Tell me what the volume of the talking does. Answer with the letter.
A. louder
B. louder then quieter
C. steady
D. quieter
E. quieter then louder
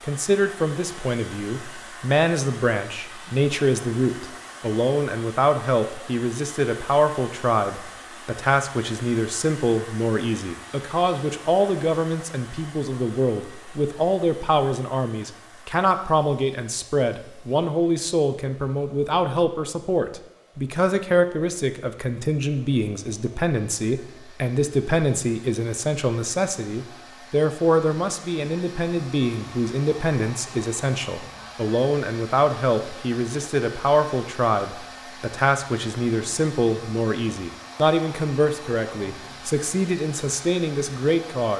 C.